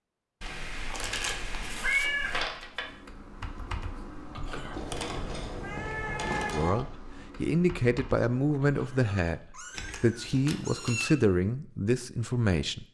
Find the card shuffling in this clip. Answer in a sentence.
You can hear the card shuffling from 0.9 to 2.9 s and from 9.7 to 11.1 s.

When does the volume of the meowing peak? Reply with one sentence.
The volume of the meowing peaks at 2 seconds.